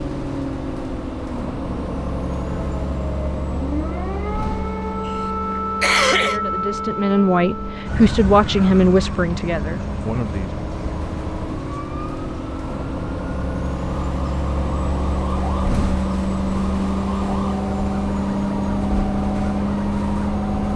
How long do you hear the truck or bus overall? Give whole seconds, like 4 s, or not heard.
21 s.